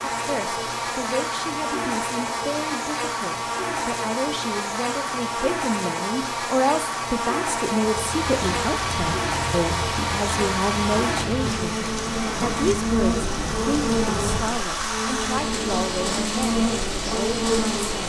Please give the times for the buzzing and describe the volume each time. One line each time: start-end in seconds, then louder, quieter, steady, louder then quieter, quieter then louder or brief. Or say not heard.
0.0-18.0 steady.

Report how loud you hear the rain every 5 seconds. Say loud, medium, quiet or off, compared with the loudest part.
off, loud, loud, loud.